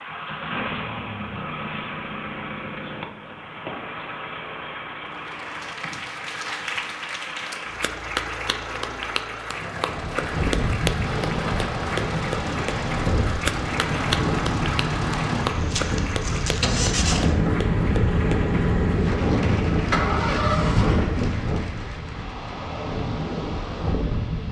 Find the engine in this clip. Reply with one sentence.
The engine can be heard from 0.0 to 21.1 s.